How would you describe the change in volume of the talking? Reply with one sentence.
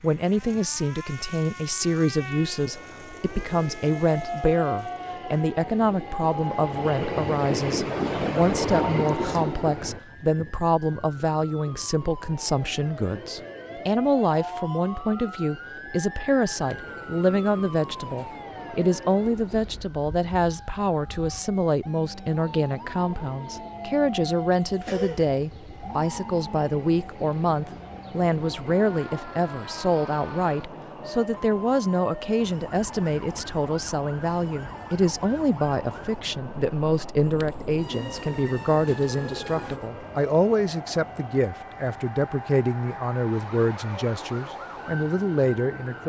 The volume of the talking stays about the same.